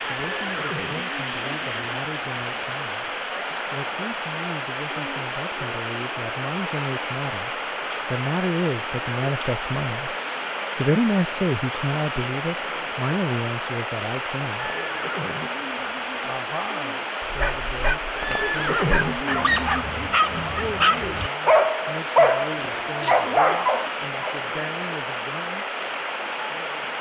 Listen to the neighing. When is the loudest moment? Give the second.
19 s.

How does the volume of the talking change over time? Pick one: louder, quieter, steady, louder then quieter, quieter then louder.
louder then quieter.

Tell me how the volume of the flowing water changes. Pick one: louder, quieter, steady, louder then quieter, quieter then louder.
steady.